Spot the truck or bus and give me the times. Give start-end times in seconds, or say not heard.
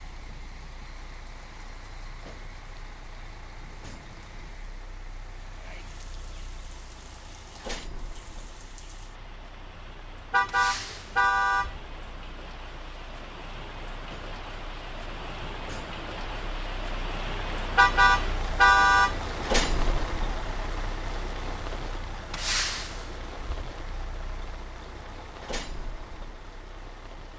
0.0-27.3.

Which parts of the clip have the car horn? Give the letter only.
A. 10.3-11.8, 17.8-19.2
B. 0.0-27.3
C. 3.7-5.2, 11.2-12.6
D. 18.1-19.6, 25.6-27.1
A.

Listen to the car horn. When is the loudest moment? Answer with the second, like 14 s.
19 s.